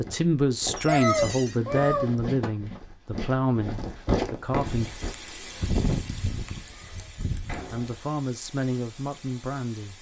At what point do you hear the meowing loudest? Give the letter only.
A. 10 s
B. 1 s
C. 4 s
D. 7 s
B.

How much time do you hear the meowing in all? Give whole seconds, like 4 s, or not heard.
3 s.